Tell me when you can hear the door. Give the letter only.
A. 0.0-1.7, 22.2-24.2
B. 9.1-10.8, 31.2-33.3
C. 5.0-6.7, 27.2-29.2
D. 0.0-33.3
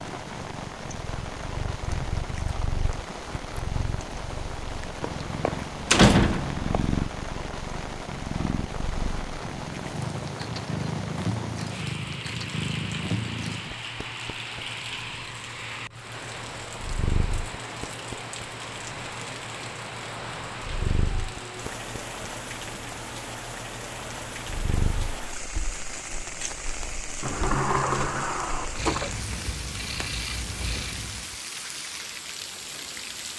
C.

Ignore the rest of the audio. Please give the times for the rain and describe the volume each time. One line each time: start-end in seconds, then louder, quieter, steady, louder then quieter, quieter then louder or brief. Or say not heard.
0.0-33.3 steady.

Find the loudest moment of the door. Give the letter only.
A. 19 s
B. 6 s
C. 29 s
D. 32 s
B.